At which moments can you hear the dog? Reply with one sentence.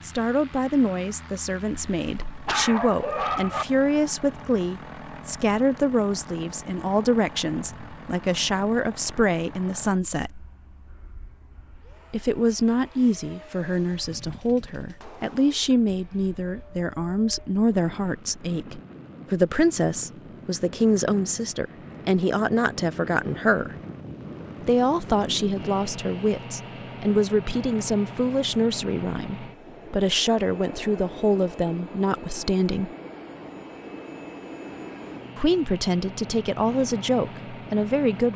You can hear the dog from 1.7 to 3.6 s.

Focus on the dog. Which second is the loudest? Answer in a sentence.
The loudest moment of the dog is at 3 seconds.